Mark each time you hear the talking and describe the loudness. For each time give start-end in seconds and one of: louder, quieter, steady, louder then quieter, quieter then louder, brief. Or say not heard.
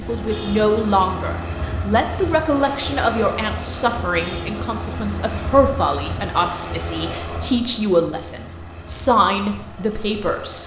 0.0-10.6 steady.